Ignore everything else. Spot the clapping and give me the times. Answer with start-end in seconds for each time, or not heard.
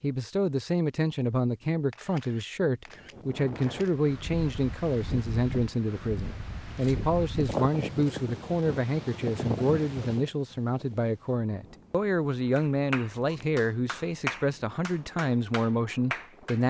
12.6-16.6.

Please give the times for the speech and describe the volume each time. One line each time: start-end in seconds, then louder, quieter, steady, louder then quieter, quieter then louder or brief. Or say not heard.
0.0-16.6 steady.